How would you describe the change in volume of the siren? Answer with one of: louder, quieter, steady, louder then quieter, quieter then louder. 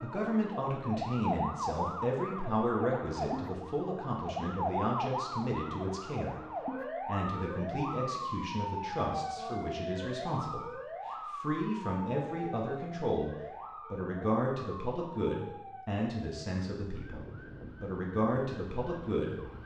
quieter.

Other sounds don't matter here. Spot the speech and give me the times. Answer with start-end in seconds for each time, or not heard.
0.0-6.3, 7.0-19.5.